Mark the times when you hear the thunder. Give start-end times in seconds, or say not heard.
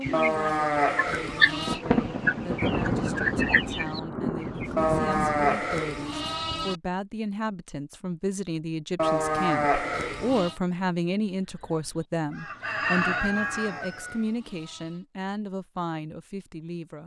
1.6-5.6.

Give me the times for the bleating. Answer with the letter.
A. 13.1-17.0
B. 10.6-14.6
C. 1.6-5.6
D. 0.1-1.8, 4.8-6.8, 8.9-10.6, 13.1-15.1
D.